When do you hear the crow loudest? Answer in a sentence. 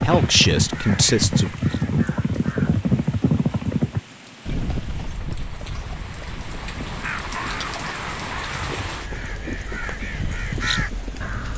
The loudest moment of the crow is at 11 seconds.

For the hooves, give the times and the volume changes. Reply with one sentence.
You can hear the hooves from 0.0 to 11.4 s, getting quieter.